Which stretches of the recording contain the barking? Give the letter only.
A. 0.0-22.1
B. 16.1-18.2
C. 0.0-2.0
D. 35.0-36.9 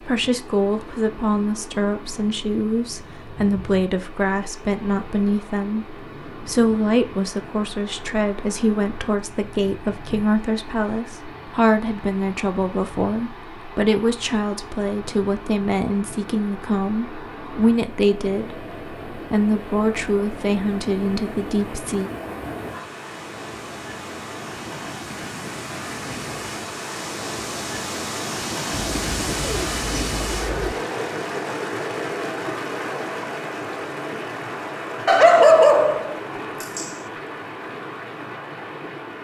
D.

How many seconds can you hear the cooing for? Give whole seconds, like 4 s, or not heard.
2 s.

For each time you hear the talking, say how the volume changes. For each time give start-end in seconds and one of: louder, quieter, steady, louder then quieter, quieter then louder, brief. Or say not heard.
0.0-22.1 steady.